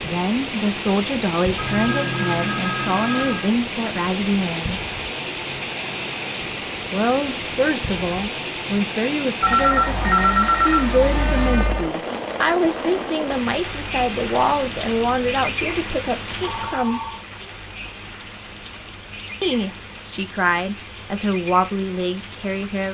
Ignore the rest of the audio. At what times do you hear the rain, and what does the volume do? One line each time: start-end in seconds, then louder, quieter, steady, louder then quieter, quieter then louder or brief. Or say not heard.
0.0-22.8 quieter.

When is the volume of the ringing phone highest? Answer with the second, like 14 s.
10 s.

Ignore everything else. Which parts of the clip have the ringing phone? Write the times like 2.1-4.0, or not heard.
1.6-3.5, 9.4-11.9, 16.4-17.2.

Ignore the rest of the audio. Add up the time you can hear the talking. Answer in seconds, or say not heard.
18 s.